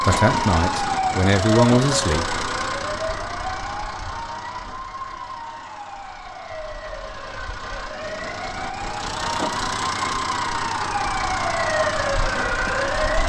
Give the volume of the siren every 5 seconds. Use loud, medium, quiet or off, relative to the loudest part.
loud, medium, loud.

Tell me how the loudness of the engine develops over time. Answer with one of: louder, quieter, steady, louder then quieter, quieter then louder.
quieter then louder.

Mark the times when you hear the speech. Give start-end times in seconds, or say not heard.
0.0-2.4.